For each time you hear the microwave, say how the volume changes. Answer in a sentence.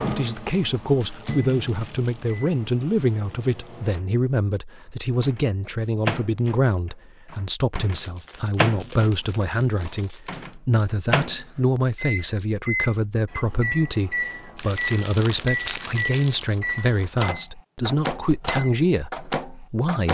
You can hear the microwave from 0.0 to 20.0 s, getting louder.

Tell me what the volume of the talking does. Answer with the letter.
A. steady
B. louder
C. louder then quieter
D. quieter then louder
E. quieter
A.